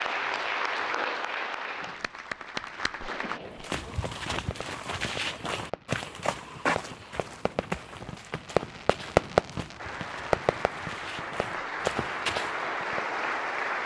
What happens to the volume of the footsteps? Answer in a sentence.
The volume of the footsteps goes down, then up.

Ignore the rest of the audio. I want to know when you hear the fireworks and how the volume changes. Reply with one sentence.
You can hear the fireworks from 1.8 to 13.0 s, getting louder then quieter.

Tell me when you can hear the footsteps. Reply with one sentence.
The footsteps can be heard from 3.6 to 12.7 s.